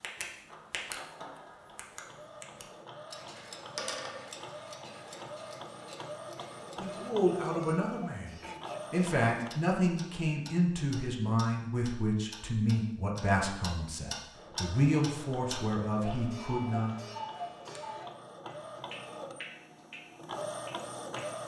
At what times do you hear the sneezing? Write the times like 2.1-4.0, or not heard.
8.4-8.8.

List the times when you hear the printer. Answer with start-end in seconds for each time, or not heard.
0.0-9.5, 14.3-21.4.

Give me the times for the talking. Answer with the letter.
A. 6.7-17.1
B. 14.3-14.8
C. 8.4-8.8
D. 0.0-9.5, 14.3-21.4
A.